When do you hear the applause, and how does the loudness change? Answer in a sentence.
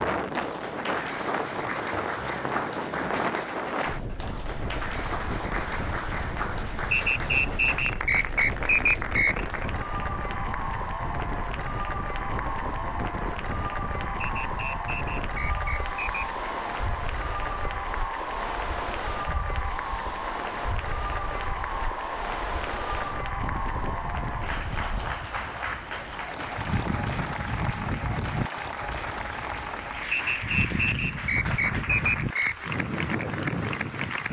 The applause can be heard from 0.0 to 34.2 s, at a steady volume.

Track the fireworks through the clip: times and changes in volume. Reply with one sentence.
You can't hear the fireworks here.